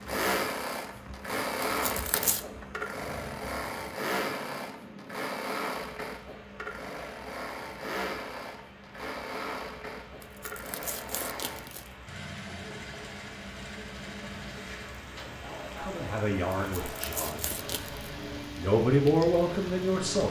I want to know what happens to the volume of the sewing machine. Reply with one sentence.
The loudness of the sewing machine goes down.